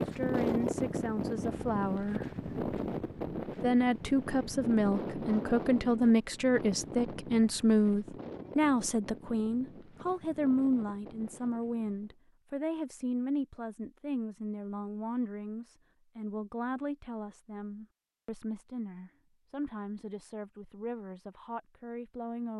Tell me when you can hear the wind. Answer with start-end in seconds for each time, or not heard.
0.0-12.2.